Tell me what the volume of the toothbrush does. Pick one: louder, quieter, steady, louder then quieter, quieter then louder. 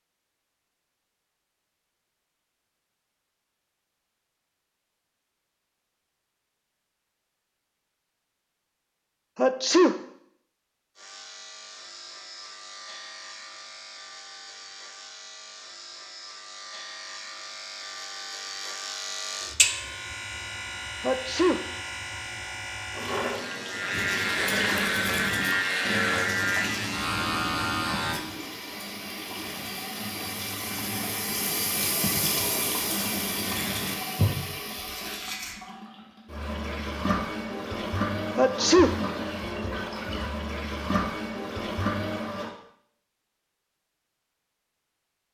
quieter then louder.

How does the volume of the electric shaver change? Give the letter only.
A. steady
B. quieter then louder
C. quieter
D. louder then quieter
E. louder
E.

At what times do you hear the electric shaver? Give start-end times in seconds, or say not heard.
10.9-28.2.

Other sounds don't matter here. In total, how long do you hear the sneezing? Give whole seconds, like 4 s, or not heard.
2 s.